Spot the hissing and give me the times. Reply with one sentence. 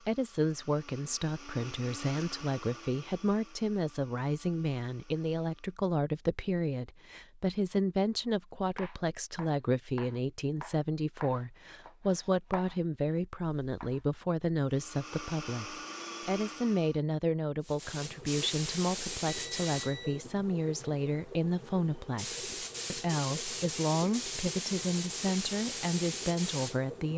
You can hear the hissing from 17.6 to 27.1 s.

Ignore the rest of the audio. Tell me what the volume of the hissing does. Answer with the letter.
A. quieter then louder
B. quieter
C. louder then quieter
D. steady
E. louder
A.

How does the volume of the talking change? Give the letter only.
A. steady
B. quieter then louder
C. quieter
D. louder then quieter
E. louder
A.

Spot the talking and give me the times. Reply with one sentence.
You can hear the talking from 0.1 to 27.1 s.